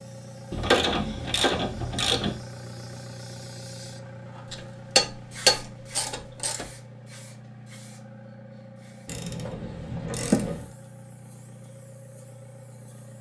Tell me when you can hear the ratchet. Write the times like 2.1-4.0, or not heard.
0.5-2.4, 4.5-6.7, 9.1-10.7.